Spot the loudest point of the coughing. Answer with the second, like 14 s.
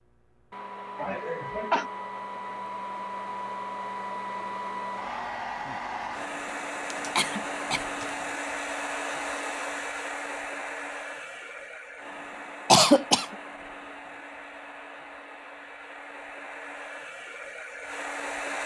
13 s.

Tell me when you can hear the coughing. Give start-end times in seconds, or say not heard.
0.9-1.9, 6.9-8.1, 12.7-13.2.